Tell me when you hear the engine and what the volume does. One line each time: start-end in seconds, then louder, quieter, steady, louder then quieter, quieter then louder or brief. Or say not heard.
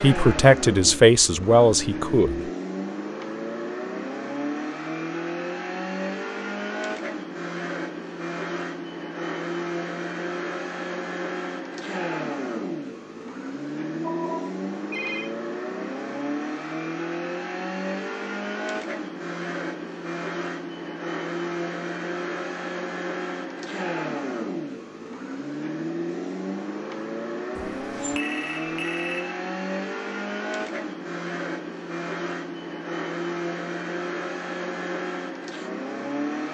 0.0-36.4 steady.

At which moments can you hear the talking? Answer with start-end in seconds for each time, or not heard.
0.0-2.4.